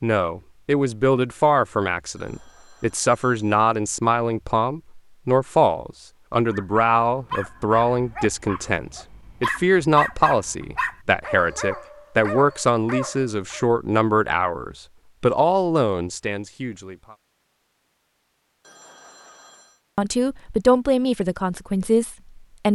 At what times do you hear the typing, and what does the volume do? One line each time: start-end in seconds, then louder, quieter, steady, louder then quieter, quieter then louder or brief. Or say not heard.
not heard.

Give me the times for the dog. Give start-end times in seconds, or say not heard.
6.5-13.7.